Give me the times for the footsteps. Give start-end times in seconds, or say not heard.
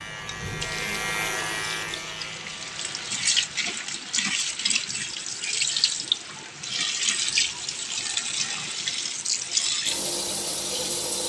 not heard.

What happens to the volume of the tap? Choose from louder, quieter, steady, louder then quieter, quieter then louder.
louder.